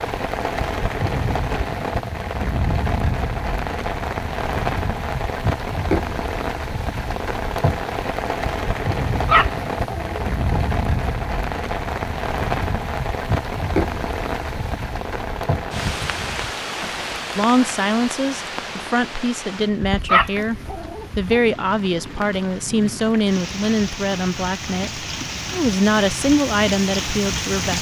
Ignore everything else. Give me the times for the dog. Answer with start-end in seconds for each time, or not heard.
9.2-10.7, 20.0-21.4.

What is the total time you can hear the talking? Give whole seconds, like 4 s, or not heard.
11 s.